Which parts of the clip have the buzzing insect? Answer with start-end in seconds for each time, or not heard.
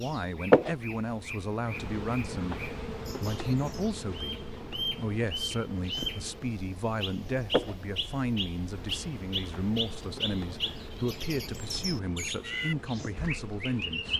0.0-14.1.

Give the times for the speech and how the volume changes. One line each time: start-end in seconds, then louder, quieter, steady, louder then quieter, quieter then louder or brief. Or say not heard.
0.0-2.6 brief
3.2-14.1 steady.